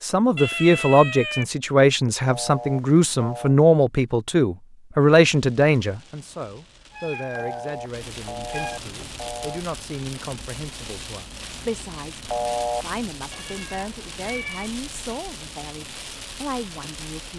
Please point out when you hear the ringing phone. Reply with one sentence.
The ringing phone can be heard from 2.2 to 3.5 s, from 7.3 to 9.7 s and from 12.2 to 12.8 s.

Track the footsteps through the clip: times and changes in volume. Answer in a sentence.
You can't hear the footsteps here.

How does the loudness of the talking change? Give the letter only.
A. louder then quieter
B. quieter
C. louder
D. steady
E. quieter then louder
B.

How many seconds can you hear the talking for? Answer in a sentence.
You can hear the talking for 17 seconds altogether.